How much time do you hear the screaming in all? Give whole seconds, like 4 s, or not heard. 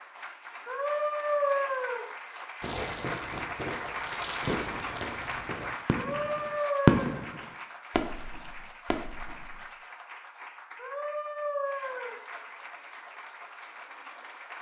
4 s.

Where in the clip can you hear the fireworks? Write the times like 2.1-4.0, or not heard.
2.6-7.3, 7.9-9.6.